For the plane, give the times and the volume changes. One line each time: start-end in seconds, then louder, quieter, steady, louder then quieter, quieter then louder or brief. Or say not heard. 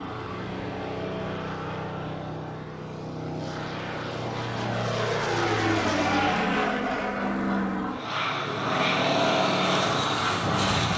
0.0-10.9 louder.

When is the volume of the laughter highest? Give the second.
6 s.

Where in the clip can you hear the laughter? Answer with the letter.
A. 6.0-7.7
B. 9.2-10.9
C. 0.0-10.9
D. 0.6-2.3
A.